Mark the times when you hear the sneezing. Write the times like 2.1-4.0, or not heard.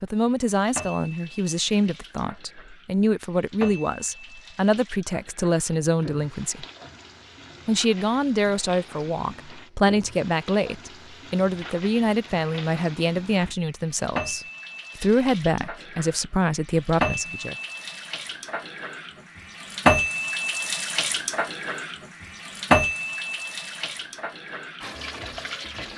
not heard.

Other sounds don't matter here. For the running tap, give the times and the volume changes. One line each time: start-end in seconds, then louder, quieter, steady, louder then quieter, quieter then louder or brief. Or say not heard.
0.5-25.9 louder.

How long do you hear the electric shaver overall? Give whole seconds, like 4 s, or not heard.
not heard.